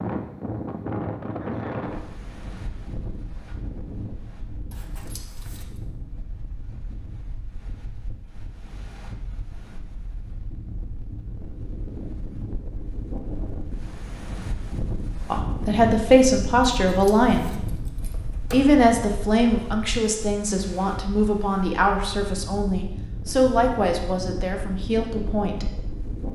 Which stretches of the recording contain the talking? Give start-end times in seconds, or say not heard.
15.3-17.5, 18.5-25.7.